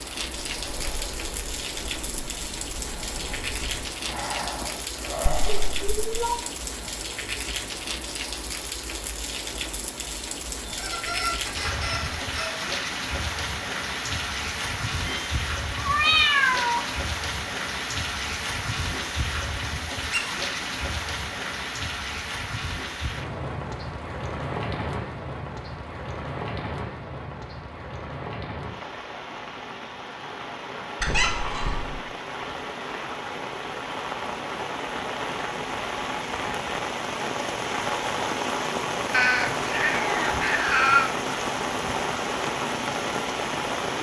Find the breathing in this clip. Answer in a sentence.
The breathing can be heard from 0.4 to 5.8 s.